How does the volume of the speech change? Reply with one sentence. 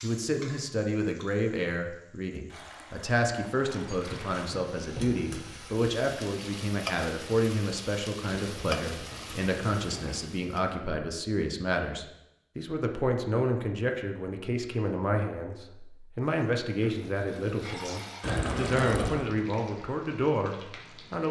The loudness of the speech stays about the same.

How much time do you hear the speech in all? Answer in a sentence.
You can hear the speech for 21 seconds altogether.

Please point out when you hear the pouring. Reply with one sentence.
The pouring can be heard from 2.5 to 4.5 s, from 8.4 to 10.2 s and from 18.2 to 19.2 s.